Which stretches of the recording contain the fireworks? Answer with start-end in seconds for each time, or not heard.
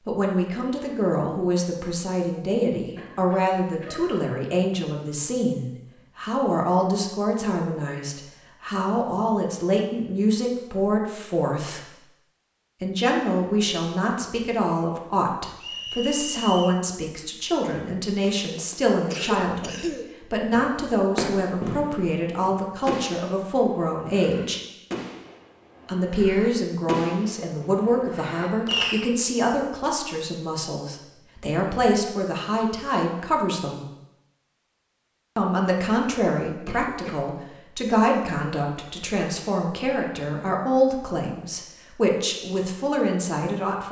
20.5-29.0.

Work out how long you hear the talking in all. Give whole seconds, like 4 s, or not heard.
40 s.